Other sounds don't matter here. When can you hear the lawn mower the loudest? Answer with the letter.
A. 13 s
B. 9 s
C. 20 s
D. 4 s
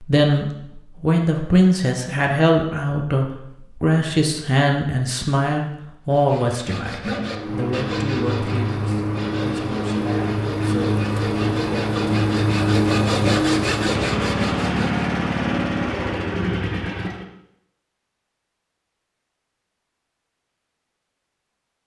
A.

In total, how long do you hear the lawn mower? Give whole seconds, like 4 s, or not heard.
10 s.